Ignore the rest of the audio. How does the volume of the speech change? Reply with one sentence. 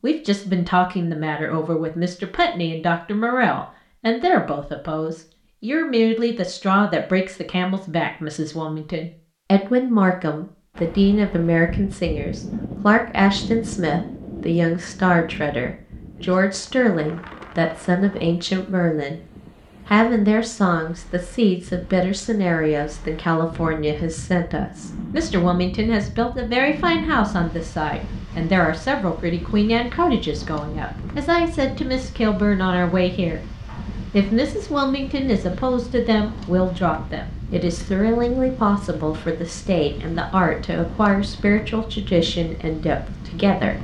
The loudness of the speech stays about the same.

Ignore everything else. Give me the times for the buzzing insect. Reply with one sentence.
The buzzing insect can't be heard in this clip.